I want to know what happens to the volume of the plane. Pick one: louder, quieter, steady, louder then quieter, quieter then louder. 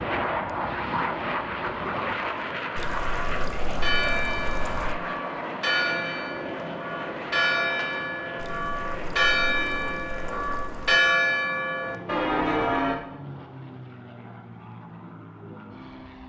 quieter.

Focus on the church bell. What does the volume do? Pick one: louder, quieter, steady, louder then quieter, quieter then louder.
louder.